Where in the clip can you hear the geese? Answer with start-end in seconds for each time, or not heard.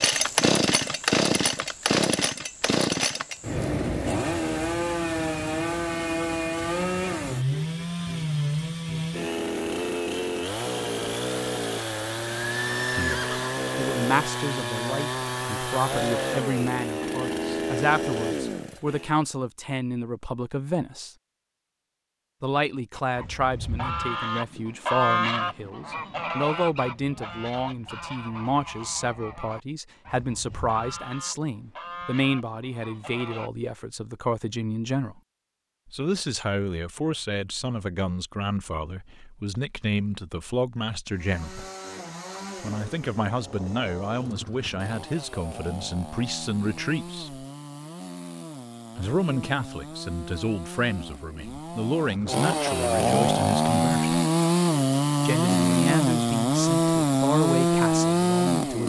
22.9-33.5.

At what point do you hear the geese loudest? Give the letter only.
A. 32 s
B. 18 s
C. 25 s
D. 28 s
C.